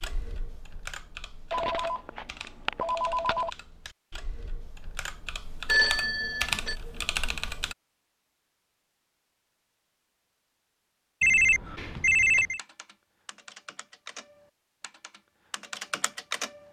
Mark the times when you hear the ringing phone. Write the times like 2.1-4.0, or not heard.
1.5-3.5, 5.7-6.8, 11.2-12.6.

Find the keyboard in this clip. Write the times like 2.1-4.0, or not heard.
0.0-7.8, 12.6-16.6.